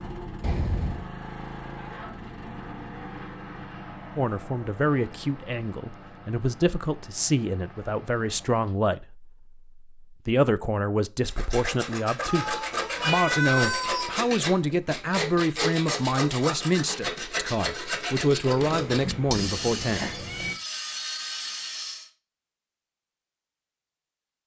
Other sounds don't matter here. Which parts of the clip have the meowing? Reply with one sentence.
The meowing can be heard from 0.4 to 1.1 s, from 12.2 to 14.1 s and from 18.6 to 20.6 s.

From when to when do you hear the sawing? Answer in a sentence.
The sawing can be heard from 11.2 to 22.1 s.